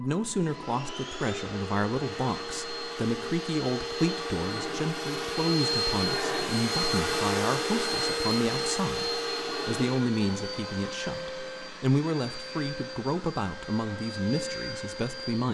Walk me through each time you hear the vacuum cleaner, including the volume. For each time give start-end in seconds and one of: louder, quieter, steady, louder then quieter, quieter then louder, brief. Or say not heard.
0.0-15.5 louder then quieter.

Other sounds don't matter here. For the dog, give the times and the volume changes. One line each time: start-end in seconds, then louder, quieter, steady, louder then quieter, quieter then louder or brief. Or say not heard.
not heard.